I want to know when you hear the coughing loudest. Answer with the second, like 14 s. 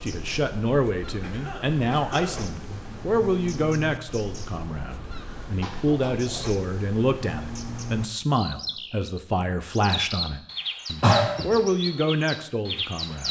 11 s.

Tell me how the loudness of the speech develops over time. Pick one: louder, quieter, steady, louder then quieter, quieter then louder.
steady.